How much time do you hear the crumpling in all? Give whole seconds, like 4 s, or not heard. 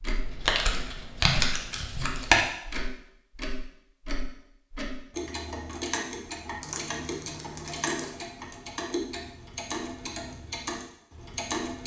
4 s.